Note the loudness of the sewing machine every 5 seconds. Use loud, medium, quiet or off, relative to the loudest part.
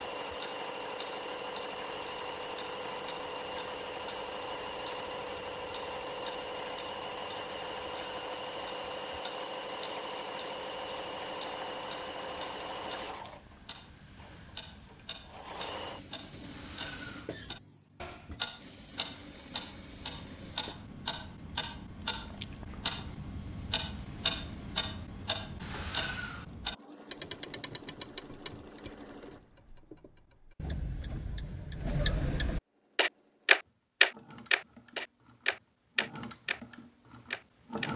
loud, loud, loud, medium, quiet, quiet, quiet, medium.